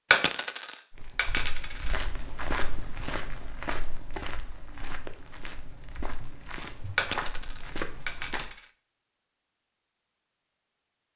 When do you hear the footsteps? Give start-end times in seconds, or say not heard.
0.9-8.6.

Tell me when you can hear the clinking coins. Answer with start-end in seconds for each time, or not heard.
0.1-1.9, 7.0-8.6.